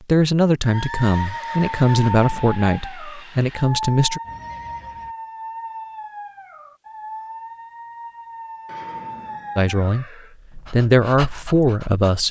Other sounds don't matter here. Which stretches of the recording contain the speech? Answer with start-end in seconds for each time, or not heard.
0.1-4.2, 9.6-10.1, 10.7-12.2.